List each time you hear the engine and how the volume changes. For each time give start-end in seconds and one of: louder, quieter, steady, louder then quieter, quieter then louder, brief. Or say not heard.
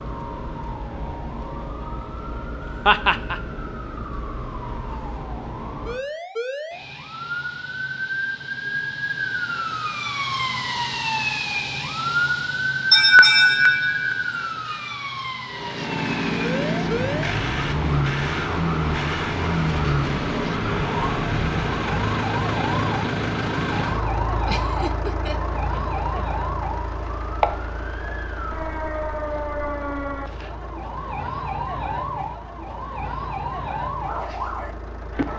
15.4-35.3 quieter.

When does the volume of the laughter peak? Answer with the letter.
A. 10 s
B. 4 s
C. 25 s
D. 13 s
D.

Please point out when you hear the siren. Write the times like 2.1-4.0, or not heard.
0.0-35.3.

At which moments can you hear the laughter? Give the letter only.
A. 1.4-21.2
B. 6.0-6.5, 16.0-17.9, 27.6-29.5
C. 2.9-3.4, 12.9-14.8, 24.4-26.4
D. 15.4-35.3
C.